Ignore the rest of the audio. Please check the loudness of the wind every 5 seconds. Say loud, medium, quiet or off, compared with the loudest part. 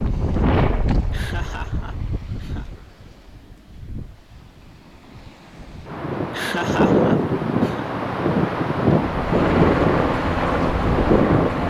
medium, loud, loud.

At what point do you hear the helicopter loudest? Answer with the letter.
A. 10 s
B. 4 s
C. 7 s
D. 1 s
A.